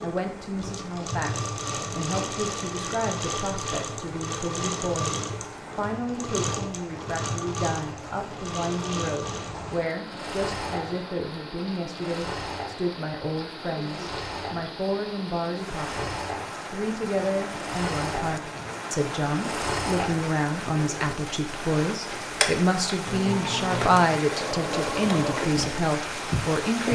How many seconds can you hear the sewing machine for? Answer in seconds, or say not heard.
27 s.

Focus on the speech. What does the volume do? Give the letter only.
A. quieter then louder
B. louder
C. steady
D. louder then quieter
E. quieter
B.